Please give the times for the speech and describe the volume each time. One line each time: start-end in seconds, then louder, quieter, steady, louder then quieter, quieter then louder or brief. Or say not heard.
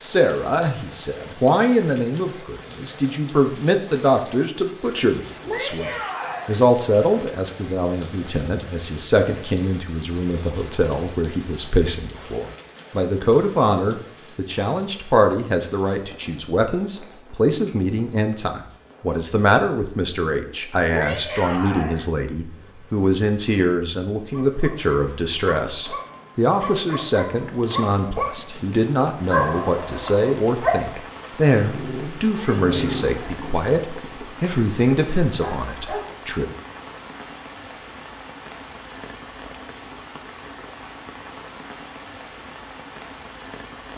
0.0-36.5 steady.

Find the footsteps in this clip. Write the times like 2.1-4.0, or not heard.
not heard.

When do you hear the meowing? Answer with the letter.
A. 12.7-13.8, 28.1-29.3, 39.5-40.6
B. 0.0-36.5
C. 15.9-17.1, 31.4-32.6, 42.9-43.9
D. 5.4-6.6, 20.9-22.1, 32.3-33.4
D.